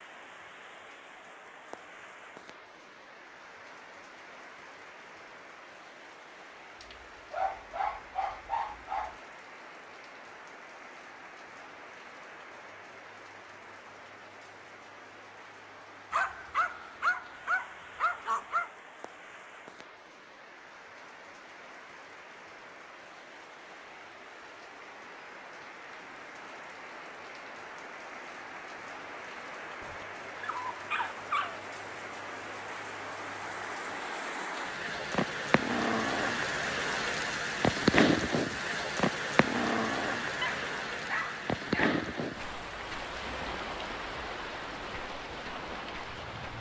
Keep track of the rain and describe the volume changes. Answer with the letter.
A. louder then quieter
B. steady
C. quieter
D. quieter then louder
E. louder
E.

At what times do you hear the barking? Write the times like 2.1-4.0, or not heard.
6.8-9.2, 16.1-18.7, 29.8-31.6, 40.4-42.0.